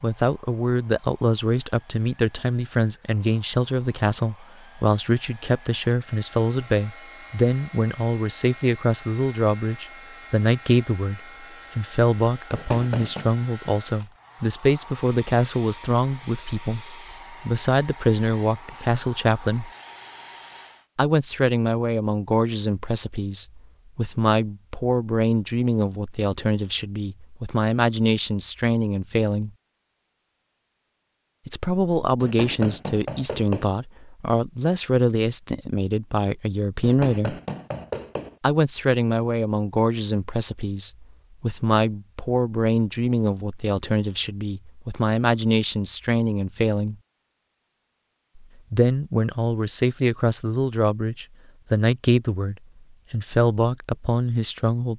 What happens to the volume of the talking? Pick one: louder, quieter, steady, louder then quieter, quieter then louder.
steady.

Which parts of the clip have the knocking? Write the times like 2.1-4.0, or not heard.
12.5-13.3, 32.2-33.8, 36.8-38.4.